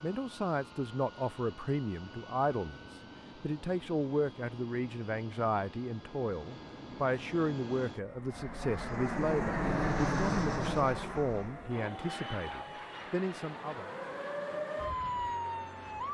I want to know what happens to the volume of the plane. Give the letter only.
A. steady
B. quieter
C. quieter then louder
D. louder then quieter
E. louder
D.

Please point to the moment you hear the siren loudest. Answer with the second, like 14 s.
15 s.